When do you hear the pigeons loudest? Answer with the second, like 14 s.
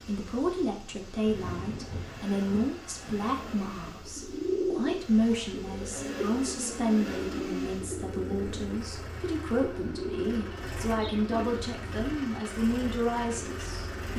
5 s.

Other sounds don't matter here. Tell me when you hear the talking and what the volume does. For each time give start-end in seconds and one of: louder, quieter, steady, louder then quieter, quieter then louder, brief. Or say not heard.
0.1-14.1 steady.